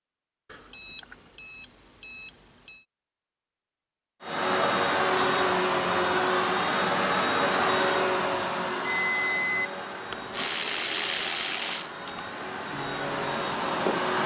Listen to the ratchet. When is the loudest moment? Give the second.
11 s.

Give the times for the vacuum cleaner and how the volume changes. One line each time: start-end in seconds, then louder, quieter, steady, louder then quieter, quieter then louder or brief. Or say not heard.
4.2-14.2 quieter then louder.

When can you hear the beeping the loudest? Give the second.
9 s.